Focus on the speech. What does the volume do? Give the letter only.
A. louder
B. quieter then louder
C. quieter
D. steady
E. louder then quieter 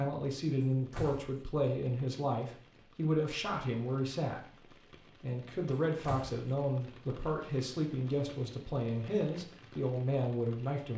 D.